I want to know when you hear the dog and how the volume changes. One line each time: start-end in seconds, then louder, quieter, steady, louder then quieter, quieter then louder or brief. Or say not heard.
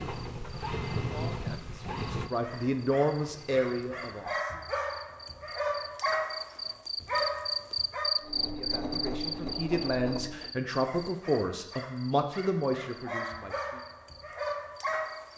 2.4-8.2 louder
10.8-15.3 louder.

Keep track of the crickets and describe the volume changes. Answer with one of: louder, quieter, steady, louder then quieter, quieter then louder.
louder then quieter.